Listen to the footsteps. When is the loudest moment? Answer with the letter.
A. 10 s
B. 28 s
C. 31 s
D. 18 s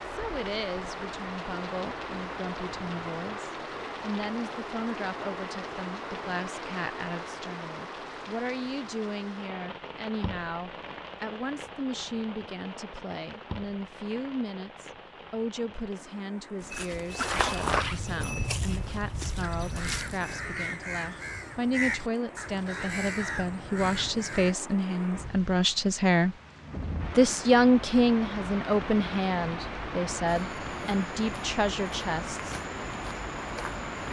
D.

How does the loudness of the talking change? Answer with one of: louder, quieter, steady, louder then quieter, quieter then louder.
louder.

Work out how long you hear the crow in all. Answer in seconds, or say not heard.
5 s.